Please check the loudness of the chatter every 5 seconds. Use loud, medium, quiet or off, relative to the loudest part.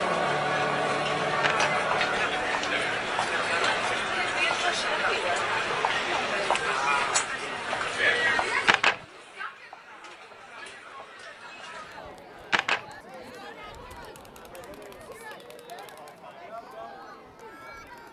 loud, loud, quiet, quiet.